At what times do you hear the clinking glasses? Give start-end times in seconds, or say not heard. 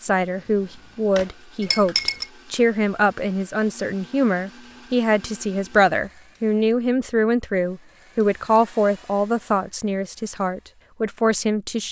1.6-2.2.